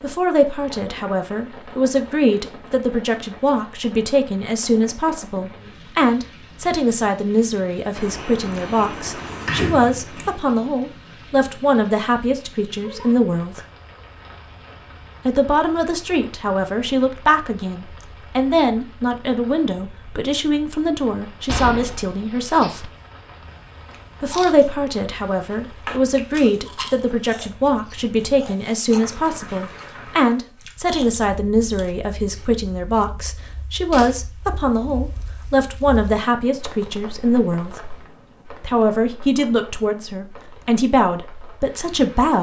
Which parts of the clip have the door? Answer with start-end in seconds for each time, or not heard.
8.0-10.4, 21.4-22.9.